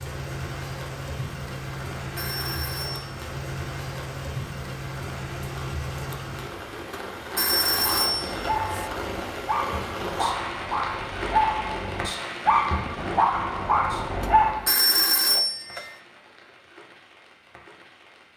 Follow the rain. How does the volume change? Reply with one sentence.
The loudness of the rain goes down.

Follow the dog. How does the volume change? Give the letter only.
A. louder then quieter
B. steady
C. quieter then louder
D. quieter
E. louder
E.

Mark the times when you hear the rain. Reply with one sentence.
You can hear the rain from 0.0 to 18.3 s.